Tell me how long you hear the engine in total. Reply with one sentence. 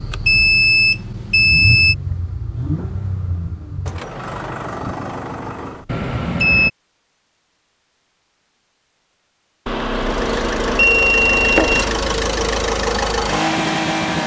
The engine can be heard for 10 seconds in total.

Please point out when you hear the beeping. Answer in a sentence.
The beeping can be heard from 0.2 to 1.9 s, from 5.8 to 6.7 s and from 9.7 to 12.1 s.